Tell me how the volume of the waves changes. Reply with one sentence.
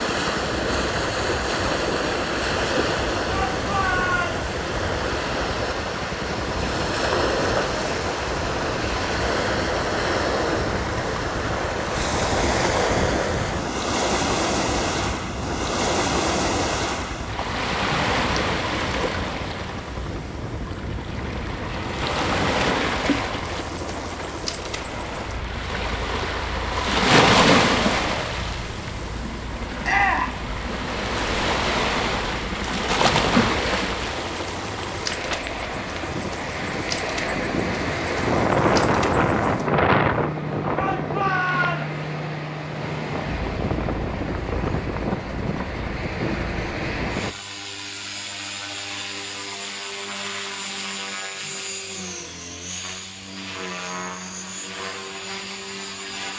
The loudness of the waves stays about the same.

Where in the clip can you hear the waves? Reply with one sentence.
The waves can be heard from 0.0 to 47.4 s.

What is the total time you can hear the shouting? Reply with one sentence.
You can hear the shouting for 3 seconds altogether.